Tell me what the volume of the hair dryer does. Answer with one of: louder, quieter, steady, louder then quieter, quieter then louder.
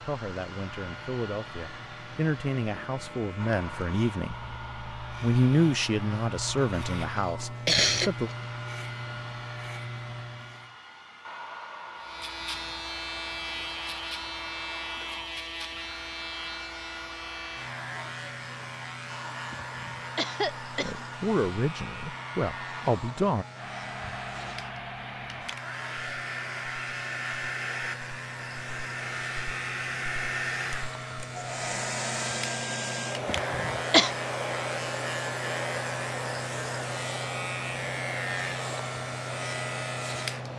louder.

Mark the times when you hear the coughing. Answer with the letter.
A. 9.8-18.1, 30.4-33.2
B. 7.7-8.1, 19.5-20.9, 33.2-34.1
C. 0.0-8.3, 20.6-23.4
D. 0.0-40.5
B.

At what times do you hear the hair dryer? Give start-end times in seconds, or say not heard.
0.0-40.5.